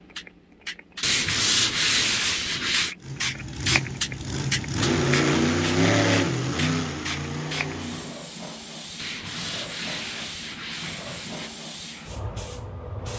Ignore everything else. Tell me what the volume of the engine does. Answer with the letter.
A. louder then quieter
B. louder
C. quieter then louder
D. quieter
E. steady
A.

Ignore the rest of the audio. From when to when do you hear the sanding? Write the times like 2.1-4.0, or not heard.
1.0-3.0, 8.9-11.5.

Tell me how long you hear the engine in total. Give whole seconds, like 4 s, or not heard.
5 s.